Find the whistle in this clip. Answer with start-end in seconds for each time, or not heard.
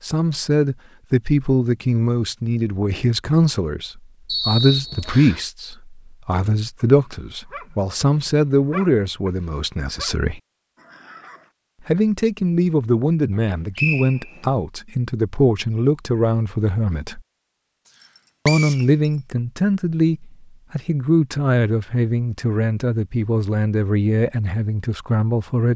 4.2-5.4, 13.8-14.4, 18.0-19.1.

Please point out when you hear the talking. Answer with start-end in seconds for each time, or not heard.
0.0-10.4, 11.8-17.2, 18.4-25.7.